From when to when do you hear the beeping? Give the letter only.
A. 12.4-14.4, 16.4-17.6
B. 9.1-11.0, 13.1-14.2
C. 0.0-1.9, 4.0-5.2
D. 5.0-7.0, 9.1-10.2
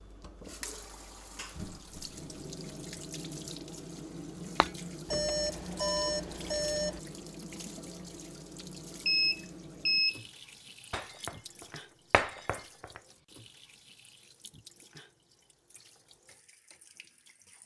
D.